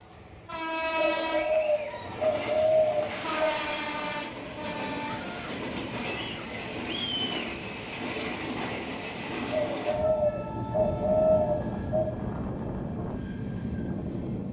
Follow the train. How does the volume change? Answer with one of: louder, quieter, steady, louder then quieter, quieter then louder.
steady.